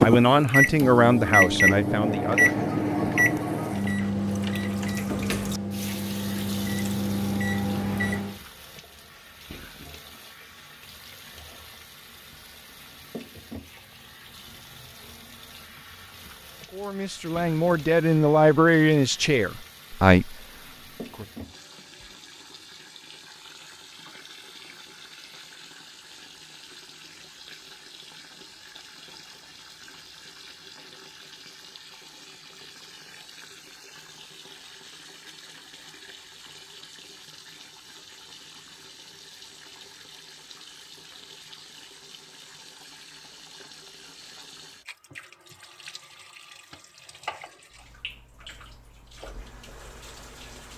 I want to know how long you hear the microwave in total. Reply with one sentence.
You can hear the microwave for 8 seconds altogether.